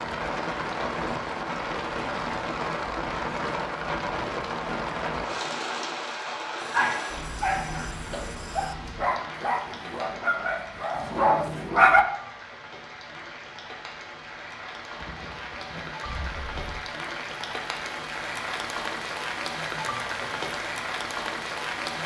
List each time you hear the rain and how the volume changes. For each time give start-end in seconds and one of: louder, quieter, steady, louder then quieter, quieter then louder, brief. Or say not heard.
0.0-22.0 quieter then louder.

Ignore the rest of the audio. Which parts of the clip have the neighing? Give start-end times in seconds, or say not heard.
14.9-16.8.